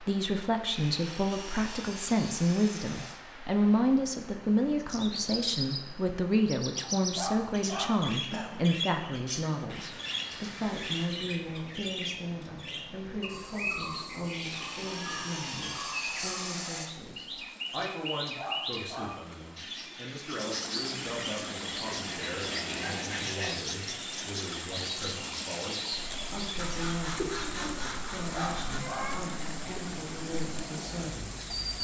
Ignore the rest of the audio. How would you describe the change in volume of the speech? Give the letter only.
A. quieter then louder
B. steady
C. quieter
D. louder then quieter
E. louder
C.